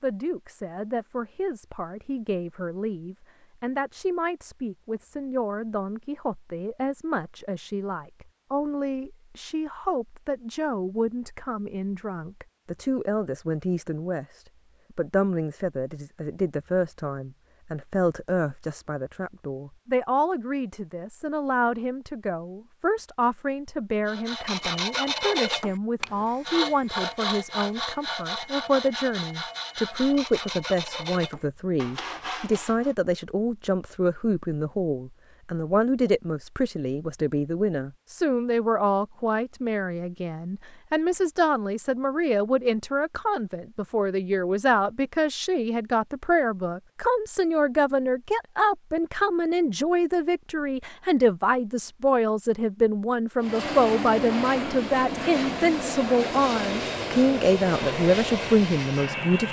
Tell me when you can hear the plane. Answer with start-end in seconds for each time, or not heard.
53.4-59.4.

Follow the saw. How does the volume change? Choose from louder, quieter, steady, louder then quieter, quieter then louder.
quieter.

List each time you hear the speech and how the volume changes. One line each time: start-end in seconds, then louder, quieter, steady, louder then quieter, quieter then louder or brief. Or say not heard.
0.0-59.4 louder.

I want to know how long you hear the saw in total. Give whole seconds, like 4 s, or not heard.
9 s.